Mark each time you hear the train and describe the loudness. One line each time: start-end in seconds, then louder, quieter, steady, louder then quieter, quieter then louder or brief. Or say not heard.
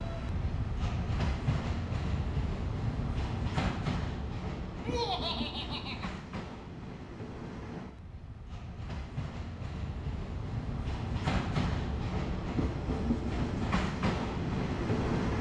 0.0-15.3 quieter then louder.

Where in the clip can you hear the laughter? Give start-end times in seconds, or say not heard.
4.8-6.1.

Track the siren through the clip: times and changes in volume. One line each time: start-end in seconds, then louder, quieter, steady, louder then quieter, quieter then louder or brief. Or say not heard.
not heard.